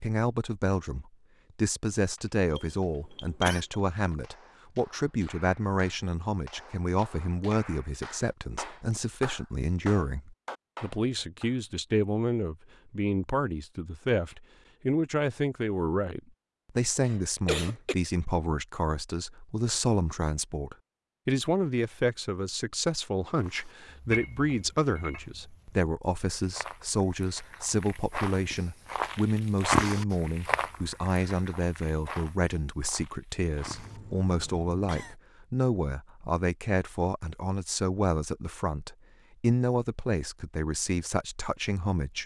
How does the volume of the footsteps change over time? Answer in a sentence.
The volume of the footsteps goes up, then down.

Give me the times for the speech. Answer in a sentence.
The speech can be heard from 0.0 to 42.2 s.